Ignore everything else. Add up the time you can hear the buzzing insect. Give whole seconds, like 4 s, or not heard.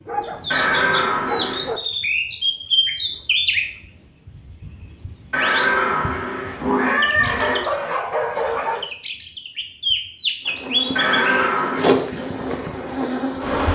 3 s.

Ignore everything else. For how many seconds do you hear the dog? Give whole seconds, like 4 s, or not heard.
3 s.